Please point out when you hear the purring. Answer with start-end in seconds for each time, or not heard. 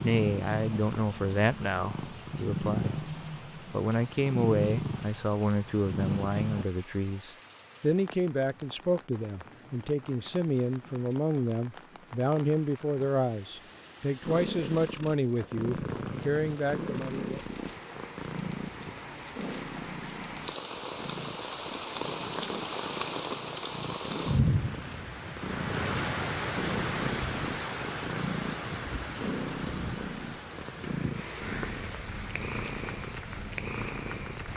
0.0-6.7, 14.2-34.5.